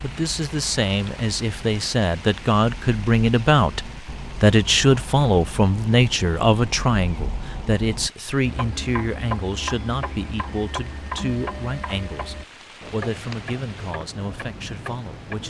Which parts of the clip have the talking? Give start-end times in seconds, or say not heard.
0.0-15.4.